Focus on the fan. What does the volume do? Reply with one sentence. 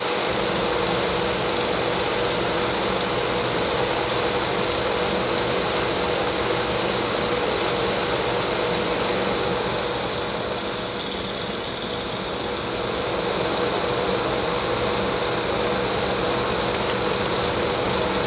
The loudness of the fan stays about the same.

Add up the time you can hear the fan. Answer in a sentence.
You can hear the fan for 18 seconds altogether.